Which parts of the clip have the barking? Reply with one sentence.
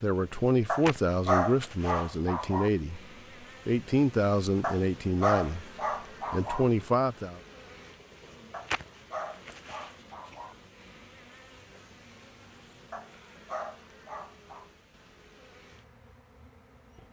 You can hear the barking from 0.7 to 2.7 s, from 4.6 to 6.7 s, from 8.5 to 10.6 s and from 12.9 to 14.7 s.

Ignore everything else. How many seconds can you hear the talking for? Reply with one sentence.
The talking can be heard for 6 seconds in total.